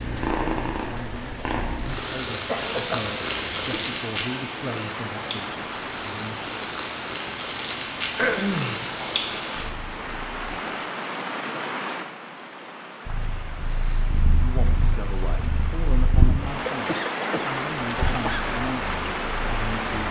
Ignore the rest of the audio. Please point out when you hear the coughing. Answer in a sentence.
The coughing can be heard from 1.8 to 3.0 s, from 8.2 to 8.8 s and from 16.6 to 18.4 s.